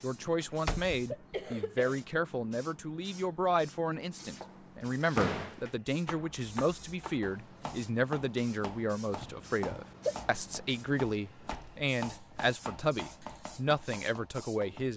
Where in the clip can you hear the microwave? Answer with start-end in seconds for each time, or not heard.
not heard.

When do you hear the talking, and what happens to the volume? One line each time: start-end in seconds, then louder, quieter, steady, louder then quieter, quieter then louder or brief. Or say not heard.
0.0-14.9 steady.